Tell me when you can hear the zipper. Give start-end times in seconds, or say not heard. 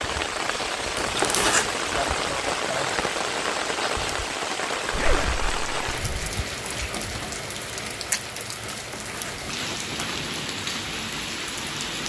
0.9-1.8, 4.9-6.3, 8.7-10.1.